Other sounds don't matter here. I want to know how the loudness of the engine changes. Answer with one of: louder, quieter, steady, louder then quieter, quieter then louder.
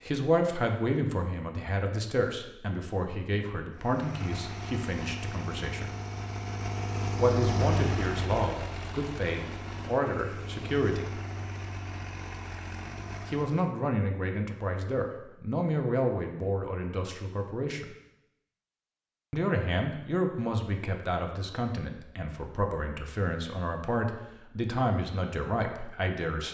louder then quieter.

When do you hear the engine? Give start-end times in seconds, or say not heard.
3.7-13.8.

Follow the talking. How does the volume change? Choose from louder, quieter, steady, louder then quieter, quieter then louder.
steady.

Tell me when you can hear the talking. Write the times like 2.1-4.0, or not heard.
0.0-5.9, 7.2-11.2, 13.2-17.9, 19.3-26.4.